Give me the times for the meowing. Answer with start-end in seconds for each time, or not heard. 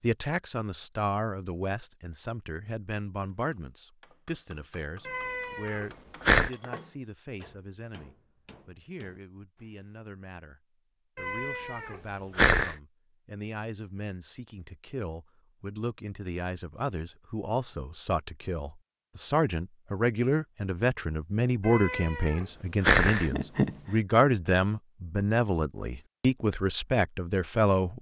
5.0-6.5, 11.2-12.8, 21.6-23.8.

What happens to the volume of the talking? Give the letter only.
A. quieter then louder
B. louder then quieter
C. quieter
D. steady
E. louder
A.